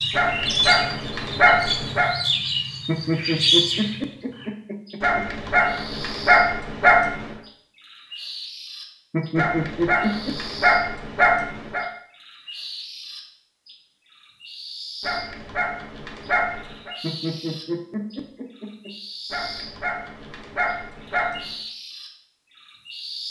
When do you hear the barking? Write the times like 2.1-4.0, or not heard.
0.1-2.1, 5.0-7.3, 9.3-11.8, 15.0-16.9, 19.3-21.4.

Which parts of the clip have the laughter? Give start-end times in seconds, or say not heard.
2.9-5.2, 9.1-10.3, 17.0-18.9.